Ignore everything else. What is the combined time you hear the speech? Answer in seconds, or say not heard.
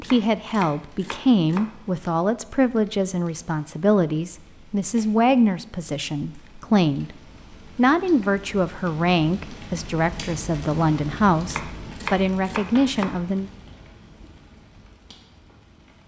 13 s.